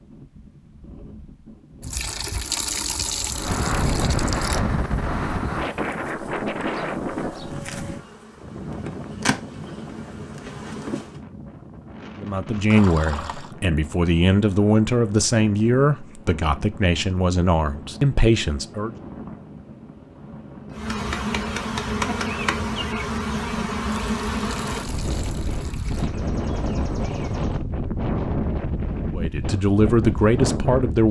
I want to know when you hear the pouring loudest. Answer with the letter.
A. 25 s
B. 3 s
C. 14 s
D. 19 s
B.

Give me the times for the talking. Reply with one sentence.
The talking can be heard from 12.2 to 18.9 s and from 29.1 to 31.0 s.